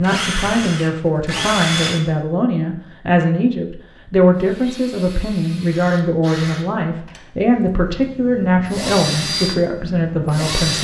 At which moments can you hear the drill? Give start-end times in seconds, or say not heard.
0.0-2.0, 4.3-10.7.